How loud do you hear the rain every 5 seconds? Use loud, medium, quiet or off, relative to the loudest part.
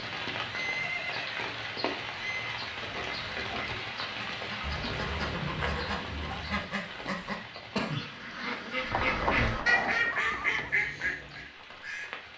loud, medium, medium.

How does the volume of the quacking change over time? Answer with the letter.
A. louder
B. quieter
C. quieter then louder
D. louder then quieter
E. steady
A.